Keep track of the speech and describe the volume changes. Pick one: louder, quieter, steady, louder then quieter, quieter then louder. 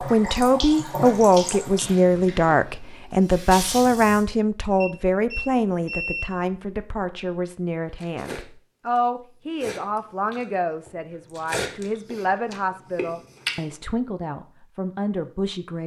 quieter.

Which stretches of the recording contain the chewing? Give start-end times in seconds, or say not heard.
8.0-13.8.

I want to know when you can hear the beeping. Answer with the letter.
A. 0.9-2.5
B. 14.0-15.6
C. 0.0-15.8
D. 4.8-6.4
D.